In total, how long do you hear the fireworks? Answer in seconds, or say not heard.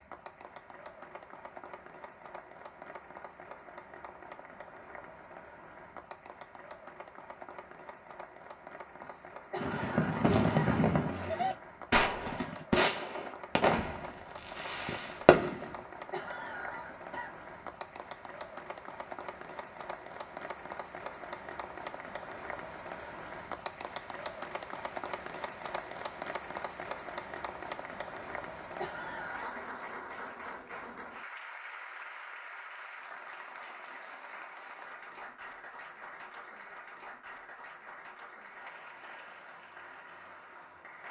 6 s.